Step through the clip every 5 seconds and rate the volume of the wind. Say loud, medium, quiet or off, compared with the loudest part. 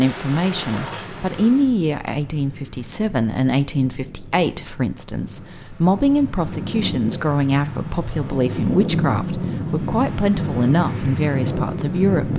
quiet, loud, loud.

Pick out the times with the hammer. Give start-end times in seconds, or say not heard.
not heard.